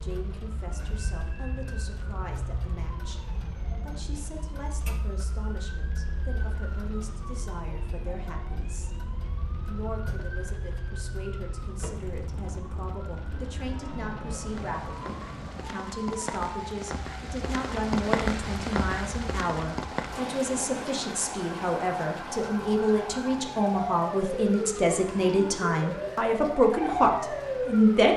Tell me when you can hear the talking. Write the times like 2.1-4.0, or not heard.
0.0-28.1.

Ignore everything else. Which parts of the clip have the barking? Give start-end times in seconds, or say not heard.
not heard.